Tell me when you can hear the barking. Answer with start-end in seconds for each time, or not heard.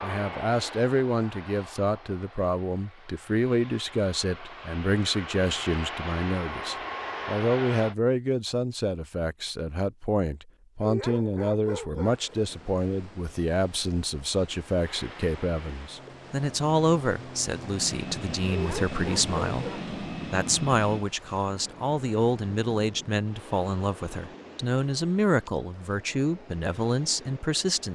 10.8-12.4, 18.4-19.9.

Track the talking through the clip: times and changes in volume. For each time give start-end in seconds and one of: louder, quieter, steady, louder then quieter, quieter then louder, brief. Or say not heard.
0.0-27.9 steady.